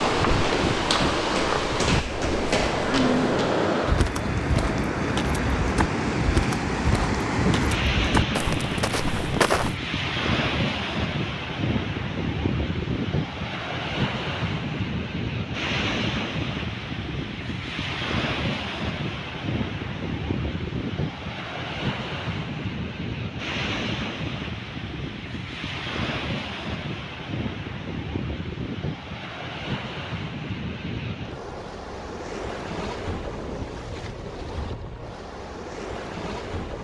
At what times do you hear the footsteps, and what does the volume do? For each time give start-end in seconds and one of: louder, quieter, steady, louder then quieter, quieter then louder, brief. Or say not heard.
0.0-9.8 steady.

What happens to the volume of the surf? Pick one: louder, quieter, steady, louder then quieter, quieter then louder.
quieter.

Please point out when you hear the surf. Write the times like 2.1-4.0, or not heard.
0.0-36.7.